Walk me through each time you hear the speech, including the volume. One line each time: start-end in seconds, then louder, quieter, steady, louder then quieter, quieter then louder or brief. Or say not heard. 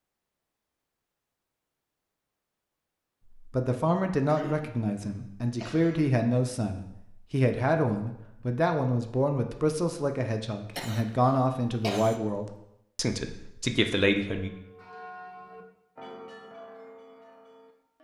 3.3-14.5 steady.